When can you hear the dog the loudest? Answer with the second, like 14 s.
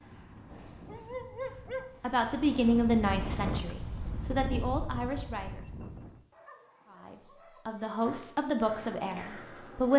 1 s.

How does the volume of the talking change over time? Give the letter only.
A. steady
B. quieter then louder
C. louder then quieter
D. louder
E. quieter
B.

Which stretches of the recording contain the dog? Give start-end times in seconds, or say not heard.
0.8-2.0, 6.3-7.8.